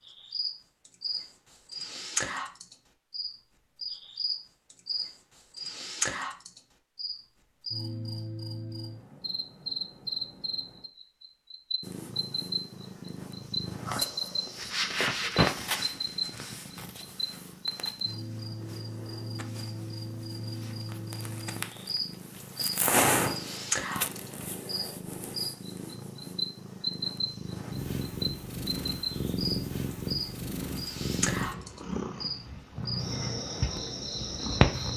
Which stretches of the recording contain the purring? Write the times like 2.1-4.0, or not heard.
11.8-34.9.